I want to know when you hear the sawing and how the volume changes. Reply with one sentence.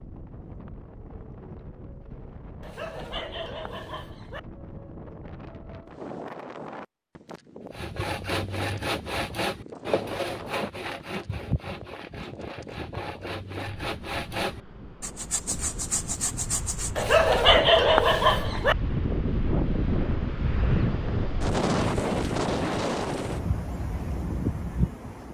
You can hear the sawing from 7.7 to 17.1 s, getting quieter then louder.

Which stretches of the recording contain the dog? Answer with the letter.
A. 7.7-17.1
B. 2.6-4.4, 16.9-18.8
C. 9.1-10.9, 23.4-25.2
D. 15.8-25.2
B.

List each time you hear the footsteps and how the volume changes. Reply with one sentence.
The footsteps can't be heard in this clip.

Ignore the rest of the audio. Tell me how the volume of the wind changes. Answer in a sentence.
The loudness of the wind goes up.